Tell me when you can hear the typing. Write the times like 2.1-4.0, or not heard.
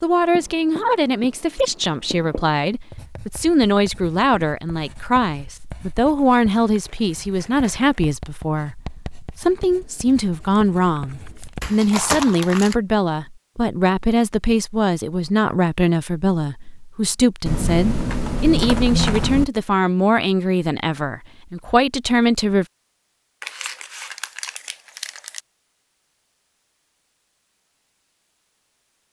9.4-11.4, 17.4-19.4.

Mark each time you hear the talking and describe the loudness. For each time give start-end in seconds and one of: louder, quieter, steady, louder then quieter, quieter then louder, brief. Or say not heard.
0.0-22.6 steady.